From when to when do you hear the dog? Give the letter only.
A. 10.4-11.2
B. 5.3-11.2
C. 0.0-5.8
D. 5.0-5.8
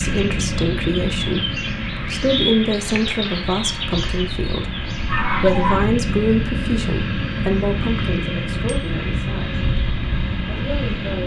D.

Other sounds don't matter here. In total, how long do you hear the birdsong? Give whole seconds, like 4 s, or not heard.
6 s.